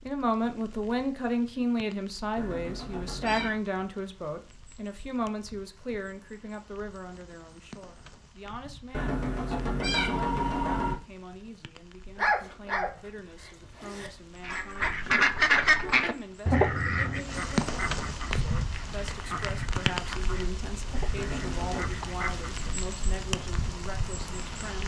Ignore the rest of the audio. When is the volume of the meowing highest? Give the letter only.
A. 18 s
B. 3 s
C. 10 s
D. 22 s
C.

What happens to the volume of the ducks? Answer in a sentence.
The loudness of the ducks goes down.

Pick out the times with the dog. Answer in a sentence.
The dog can be heard from 12.2 to 14.1 s.